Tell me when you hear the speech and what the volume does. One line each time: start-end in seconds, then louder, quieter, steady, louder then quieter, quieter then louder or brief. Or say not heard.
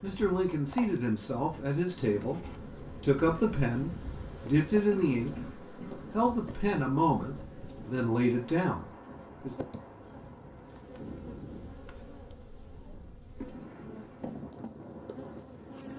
0.0-2.4 brief
3.0-9.6 steady.